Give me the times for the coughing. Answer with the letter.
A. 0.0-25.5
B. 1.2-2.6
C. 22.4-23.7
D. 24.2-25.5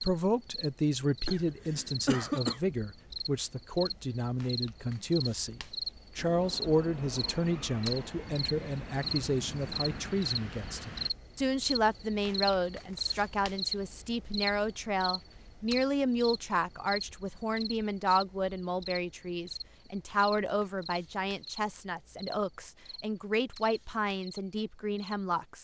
B.